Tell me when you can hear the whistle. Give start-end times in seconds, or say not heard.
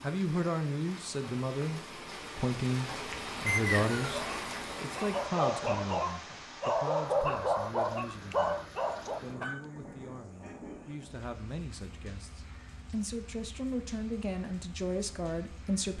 3.5-4.2.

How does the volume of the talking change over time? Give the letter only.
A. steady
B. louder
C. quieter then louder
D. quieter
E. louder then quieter
C.